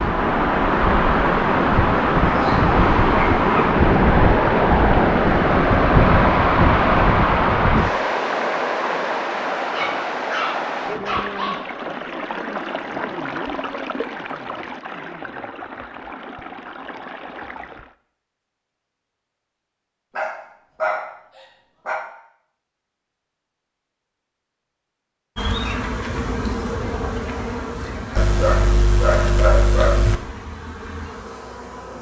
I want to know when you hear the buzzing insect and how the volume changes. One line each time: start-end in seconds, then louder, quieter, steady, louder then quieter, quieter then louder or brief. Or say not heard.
25.4-31.9 quieter.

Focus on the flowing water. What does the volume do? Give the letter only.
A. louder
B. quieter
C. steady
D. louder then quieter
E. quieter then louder
B.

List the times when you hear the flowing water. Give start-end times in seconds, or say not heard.
0.0-17.9.